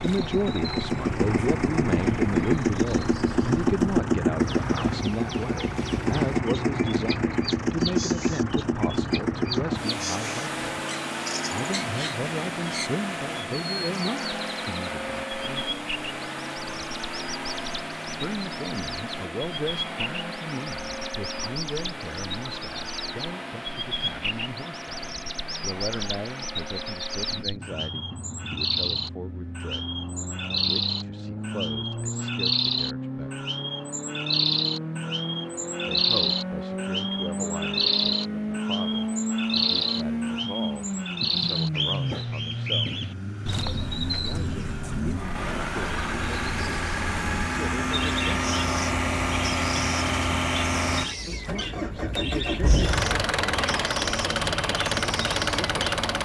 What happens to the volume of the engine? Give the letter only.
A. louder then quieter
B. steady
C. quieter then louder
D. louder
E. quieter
C.